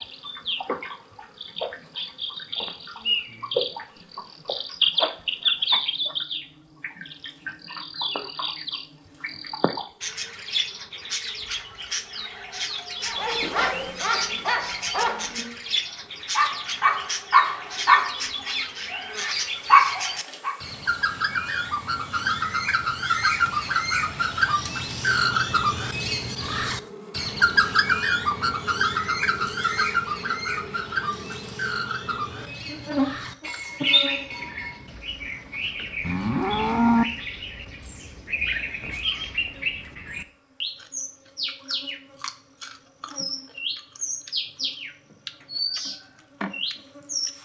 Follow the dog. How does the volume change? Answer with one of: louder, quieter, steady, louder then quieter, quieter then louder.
louder.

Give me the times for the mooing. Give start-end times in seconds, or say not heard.
36.0-37.0.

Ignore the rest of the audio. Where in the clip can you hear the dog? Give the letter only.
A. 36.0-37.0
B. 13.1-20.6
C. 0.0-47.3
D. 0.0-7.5
B.